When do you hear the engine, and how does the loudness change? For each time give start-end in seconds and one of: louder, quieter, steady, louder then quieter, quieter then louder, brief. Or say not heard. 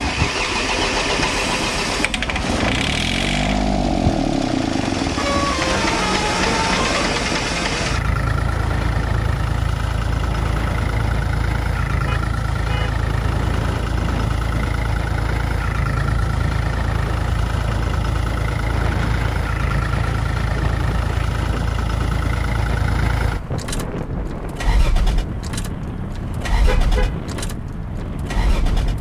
0.0-28.9 quieter.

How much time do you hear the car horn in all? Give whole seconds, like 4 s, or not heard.
4 s.